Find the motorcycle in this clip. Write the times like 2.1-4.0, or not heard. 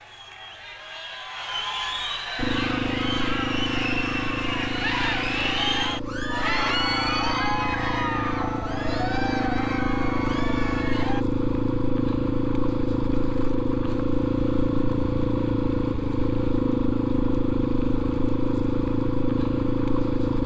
2.4-20.4.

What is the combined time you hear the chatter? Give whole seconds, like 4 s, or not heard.
11 s.